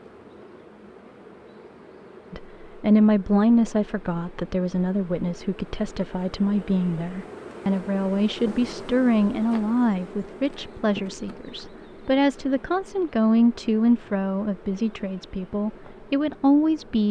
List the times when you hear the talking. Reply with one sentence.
The talking can be heard from 2.3 to 17.0 s.